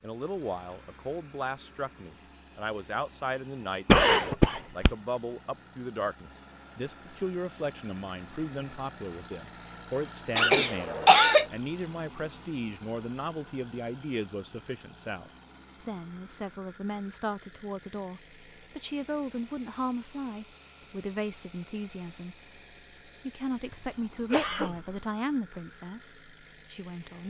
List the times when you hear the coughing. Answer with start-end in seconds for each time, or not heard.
3.9-4.9, 10.3-11.4, 23.6-24.9.